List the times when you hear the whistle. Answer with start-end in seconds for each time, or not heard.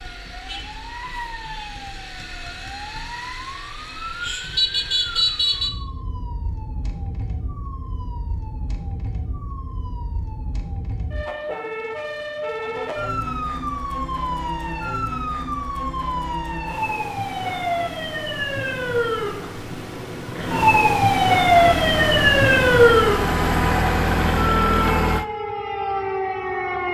not heard.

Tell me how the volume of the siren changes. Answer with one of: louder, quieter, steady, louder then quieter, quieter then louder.
quieter then louder.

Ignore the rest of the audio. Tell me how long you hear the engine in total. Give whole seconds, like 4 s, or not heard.
4 s.